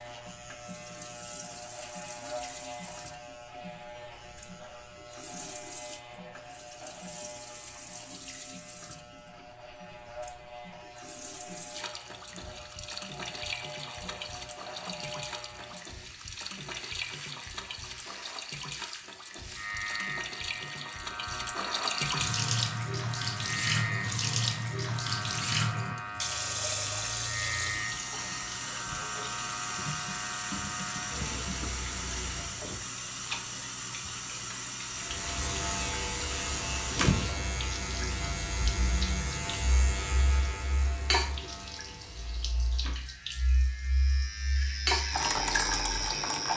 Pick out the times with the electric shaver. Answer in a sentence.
The electric shaver can be heard from 0.0 to 32.7 s and from 34.9 to 46.5 s.